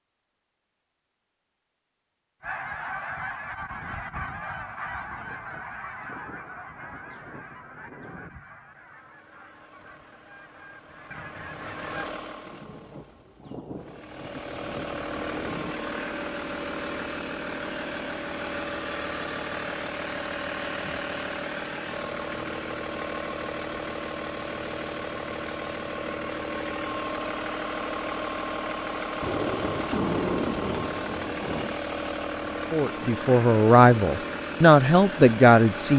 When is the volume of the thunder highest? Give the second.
30 s.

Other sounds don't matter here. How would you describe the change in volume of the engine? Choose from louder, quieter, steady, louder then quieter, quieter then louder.
louder.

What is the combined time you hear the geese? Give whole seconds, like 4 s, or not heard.
10 s.